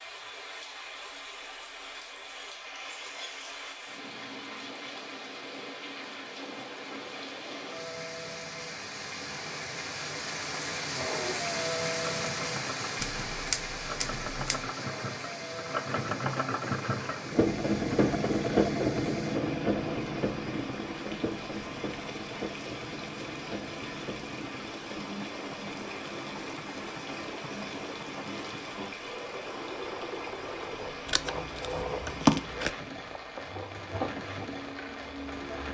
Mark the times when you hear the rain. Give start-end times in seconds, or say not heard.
0.0-35.6.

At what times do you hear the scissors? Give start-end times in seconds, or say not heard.
13.0-14.6, 31.1-32.7.